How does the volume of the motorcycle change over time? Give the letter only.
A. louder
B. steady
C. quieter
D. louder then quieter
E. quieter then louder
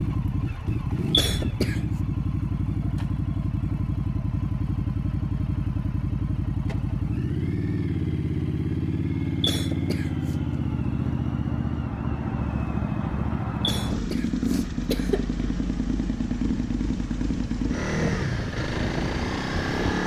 B.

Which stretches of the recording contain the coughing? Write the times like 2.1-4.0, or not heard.
1.1-1.8, 9.4-10.3, 13.6-15.3.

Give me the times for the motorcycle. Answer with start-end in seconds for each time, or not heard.
0.0-20.0.